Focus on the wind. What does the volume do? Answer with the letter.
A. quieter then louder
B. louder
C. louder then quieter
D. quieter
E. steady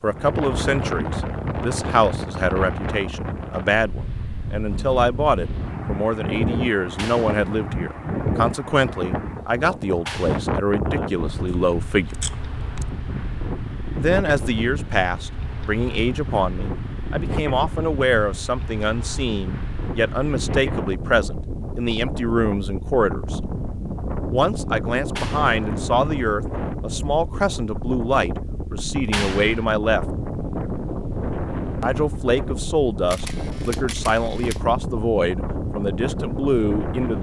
E.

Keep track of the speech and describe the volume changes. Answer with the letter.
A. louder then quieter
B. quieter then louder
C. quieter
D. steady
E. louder
D.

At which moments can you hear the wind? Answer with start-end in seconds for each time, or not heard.
0.0-37.1.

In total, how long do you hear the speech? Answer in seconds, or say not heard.
33 s.